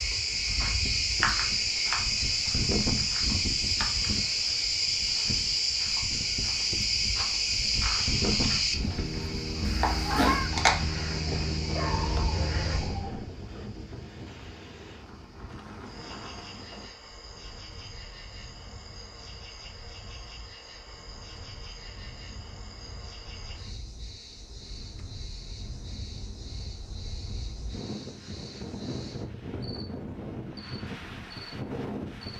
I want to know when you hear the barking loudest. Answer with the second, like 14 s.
12 s.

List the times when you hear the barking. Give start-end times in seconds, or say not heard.
11.7-13.2.